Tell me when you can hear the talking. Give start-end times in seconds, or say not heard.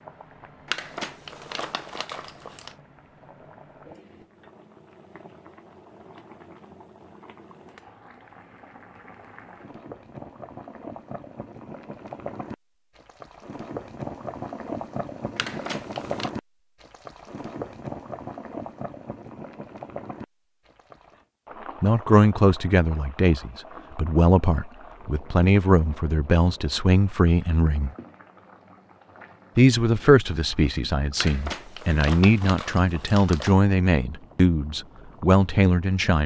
21.8-27.9, 29.6-36.2.